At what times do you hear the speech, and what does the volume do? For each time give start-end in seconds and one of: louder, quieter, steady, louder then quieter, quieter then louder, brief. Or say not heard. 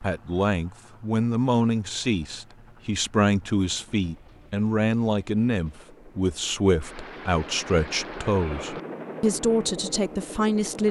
0.0-10.8 steady.